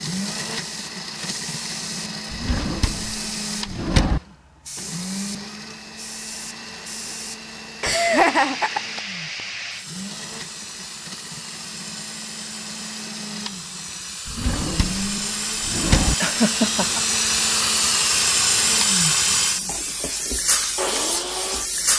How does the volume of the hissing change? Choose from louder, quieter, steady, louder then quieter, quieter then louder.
louder.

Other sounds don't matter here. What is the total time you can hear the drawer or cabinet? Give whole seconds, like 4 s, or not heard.
4 s.